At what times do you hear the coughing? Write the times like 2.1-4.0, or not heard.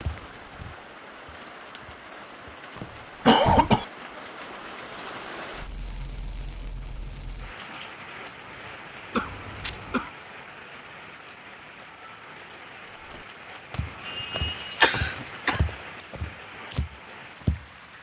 2.8-3.9, 9.2-10.1, 14.1-15.6.